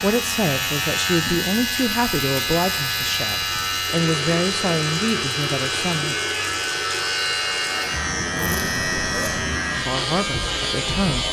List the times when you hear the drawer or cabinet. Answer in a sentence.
You can't hear the drawer or cabinet here.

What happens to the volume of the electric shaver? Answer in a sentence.
The volume of the electric shaver stays about the same.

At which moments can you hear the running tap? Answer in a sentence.
You can hear the running tap from 0.0 to 8.1 s.